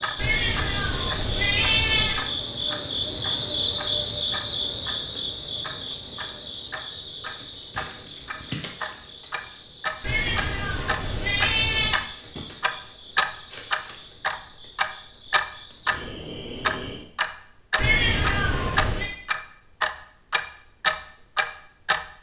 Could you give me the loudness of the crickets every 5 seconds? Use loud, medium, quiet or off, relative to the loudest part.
loud, medium, quiet, quiet, off.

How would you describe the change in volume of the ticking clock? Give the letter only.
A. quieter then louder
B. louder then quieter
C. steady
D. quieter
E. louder
E.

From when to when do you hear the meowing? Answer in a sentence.
You can hear the meowing from 0.1 to 2.2 s, from 10.0 to 12.0 s and from 17.8 to 19.1 s.